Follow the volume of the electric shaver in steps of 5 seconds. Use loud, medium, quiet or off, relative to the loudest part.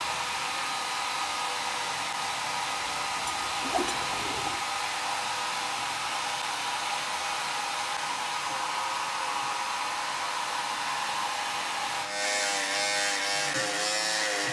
quiet, quiet, loud.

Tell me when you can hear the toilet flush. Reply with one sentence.
The toilet flush can be heard from 2.8 to 4.7 s.